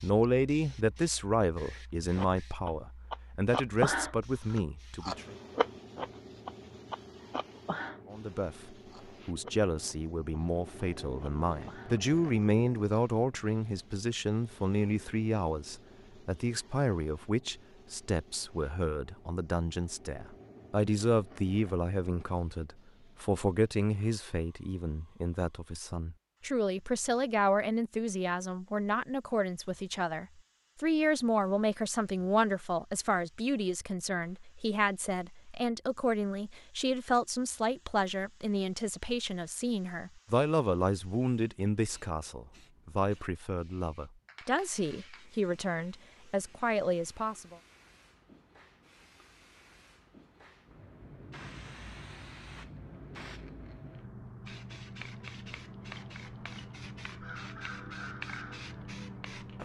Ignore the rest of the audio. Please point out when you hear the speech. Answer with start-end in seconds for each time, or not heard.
0.0-5.3, 8.1-47.5.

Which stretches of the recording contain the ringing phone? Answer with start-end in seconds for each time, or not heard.
not heard.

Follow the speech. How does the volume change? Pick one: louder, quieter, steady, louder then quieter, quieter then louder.
steady.